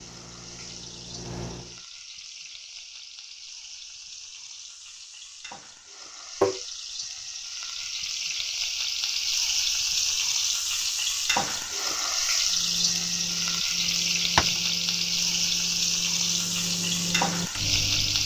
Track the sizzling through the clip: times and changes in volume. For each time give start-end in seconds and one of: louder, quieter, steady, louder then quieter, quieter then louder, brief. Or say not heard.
0.0-18.2 louder.